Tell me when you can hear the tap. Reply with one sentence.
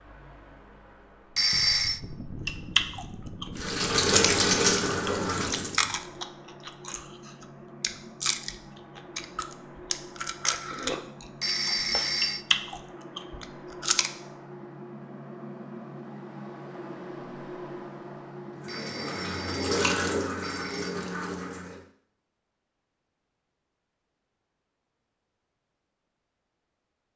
You can hear the tap from 3.5 to 5.8 s and from 18.6 to 21.8 s.